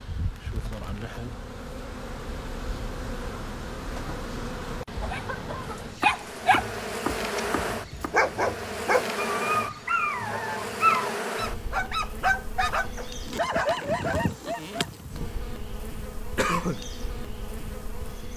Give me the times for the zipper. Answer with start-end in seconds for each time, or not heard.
not heard.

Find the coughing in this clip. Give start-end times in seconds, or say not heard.
5.0-5.8, 16.4-16.9.